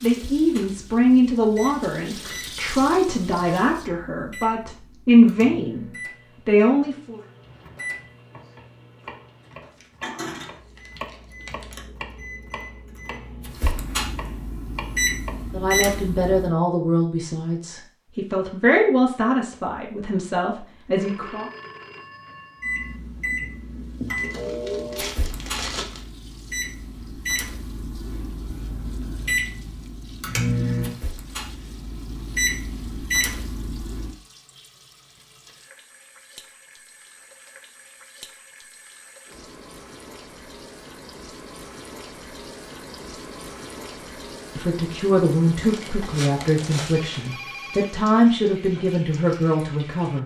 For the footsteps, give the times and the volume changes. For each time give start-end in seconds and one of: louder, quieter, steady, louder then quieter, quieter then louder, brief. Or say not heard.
not heard.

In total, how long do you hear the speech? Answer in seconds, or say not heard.
19 s.